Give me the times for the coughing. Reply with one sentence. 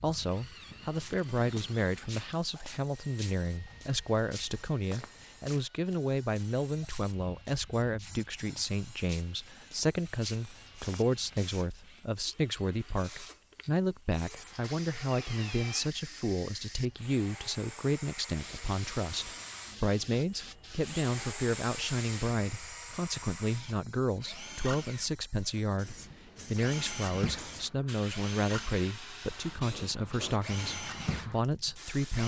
You can't hear the coughing here.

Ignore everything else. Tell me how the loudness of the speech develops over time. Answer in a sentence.
The volume of the speech stays about the same.